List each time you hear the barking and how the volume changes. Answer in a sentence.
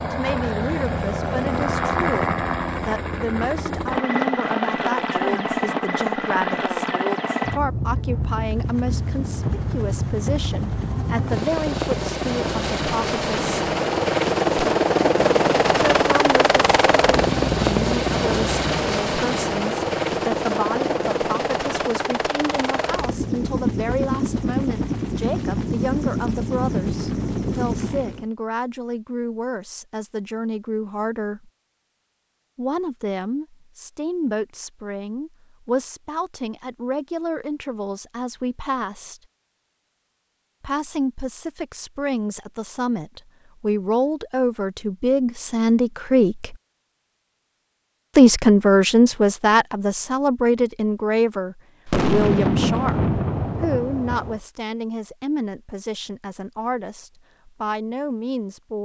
You can't hear the barking here.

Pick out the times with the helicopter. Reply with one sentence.
You can hear the helicopter from 0.0 to 28.2 s.